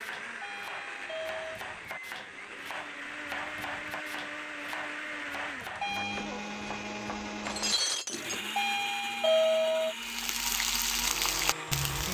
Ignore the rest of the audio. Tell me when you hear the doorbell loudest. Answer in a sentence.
The loudest moment of the doorbell is at 9 seconds.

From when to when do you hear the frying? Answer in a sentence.
The frying can be heard from 10.0 to 12.0 s.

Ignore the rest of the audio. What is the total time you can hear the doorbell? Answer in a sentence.
You can hear the doorbell for 3 seconds altogether.